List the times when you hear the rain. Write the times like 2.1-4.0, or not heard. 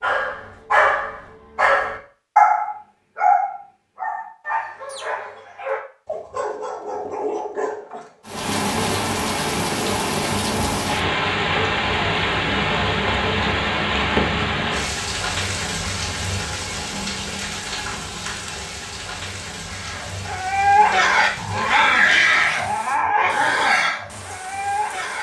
8.2-25.1.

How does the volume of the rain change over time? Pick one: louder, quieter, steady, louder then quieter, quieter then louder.
quieter.